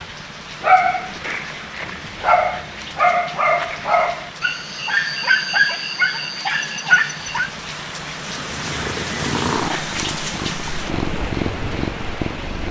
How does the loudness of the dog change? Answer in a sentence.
The loudness of the dog goes up.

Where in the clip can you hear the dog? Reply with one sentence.
You can hear the dog from 0.6 to 7.5 s.